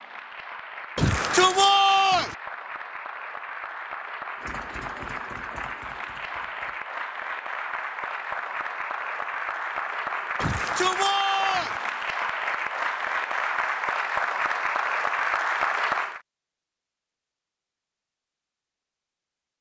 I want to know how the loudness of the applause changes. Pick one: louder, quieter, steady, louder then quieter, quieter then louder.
louder.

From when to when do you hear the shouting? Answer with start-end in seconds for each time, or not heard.
0.9-2.4, 10.4-11.8.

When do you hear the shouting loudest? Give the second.
2 s.